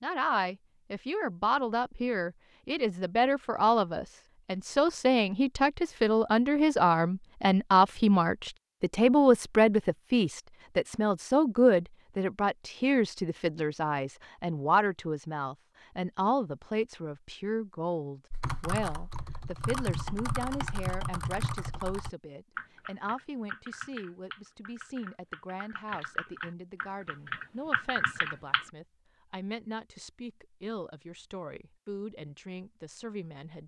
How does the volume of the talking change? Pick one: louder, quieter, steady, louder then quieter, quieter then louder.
quieter.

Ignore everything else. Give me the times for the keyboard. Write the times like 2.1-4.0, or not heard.
18.3-28.6.